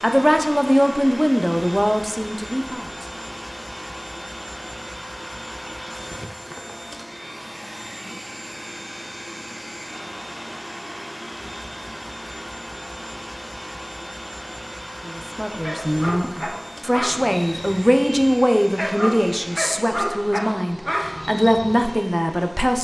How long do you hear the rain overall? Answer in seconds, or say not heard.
not heard.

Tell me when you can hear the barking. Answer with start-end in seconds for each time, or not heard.
15.6-22.0.